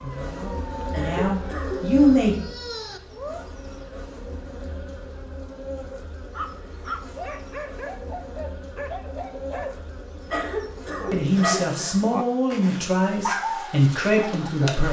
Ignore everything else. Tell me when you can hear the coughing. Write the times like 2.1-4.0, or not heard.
0.9-2.0, 10.3-12.1.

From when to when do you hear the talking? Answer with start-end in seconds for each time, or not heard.
0.0-2.4, 11.1-14.8.